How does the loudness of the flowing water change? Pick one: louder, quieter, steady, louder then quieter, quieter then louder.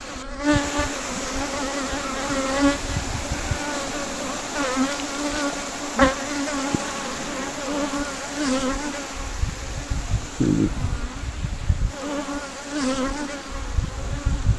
quieter.